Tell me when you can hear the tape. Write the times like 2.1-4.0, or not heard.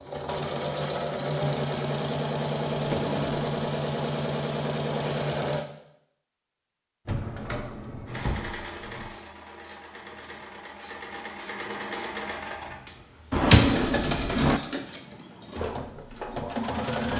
not heard.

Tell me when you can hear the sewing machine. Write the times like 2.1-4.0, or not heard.
0.0-5.7, 8.1-17.1.